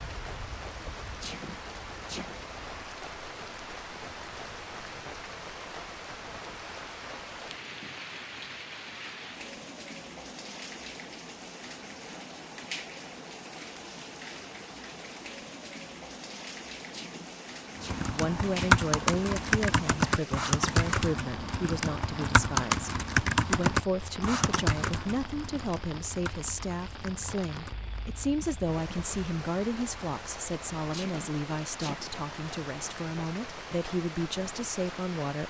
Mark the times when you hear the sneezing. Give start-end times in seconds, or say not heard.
1.1-2.5, 16.8-18.1, 30.8-32.1.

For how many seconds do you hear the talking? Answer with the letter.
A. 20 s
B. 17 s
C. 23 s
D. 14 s
B.